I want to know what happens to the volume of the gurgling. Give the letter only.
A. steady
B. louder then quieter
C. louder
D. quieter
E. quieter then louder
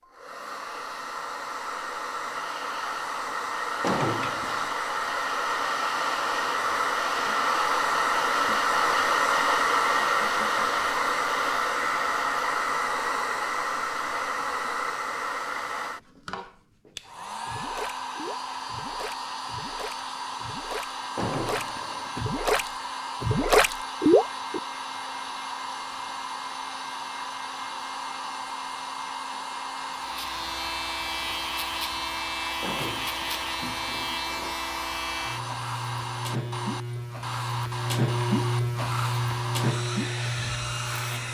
C.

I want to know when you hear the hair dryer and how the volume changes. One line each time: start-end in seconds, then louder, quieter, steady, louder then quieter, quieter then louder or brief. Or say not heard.
0.0-41.2 quieter.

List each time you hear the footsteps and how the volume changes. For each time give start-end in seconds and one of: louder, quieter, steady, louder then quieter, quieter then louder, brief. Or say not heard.
not heard.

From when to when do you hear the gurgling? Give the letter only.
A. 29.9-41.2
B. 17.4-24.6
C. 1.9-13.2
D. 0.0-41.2
B.